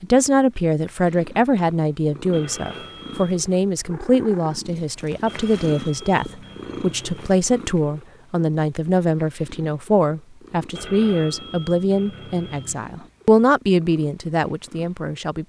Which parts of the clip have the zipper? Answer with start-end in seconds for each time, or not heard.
not heard.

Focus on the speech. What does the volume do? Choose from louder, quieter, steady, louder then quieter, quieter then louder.
steady.